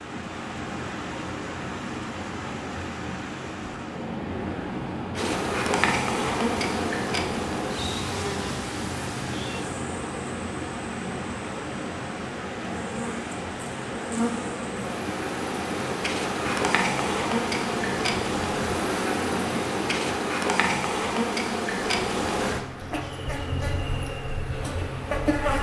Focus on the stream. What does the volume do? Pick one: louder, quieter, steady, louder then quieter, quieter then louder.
quieter.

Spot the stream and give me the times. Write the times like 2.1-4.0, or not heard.
0.0-25.4.